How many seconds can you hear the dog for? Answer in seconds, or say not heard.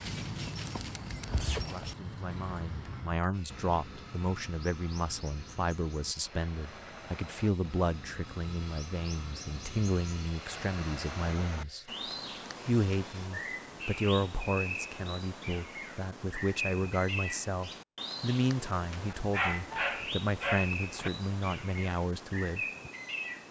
2 s.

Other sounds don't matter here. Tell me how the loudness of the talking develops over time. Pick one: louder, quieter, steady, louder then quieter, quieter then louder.
steady.